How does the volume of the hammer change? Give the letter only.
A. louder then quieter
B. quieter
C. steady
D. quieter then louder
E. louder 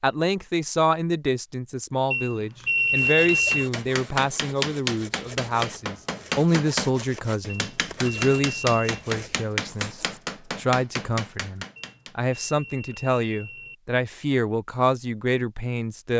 C.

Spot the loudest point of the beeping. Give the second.
3 s.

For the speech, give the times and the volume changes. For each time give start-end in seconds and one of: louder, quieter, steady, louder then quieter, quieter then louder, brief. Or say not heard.
0.0-16.1 steady.